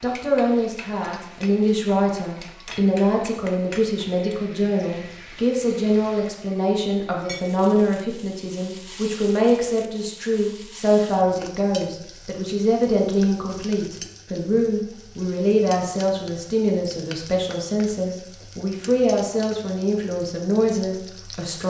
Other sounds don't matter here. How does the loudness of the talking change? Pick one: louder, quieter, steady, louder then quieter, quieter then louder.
steady.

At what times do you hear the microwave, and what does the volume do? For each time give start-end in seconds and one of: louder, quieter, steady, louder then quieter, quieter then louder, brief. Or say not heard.
not heard.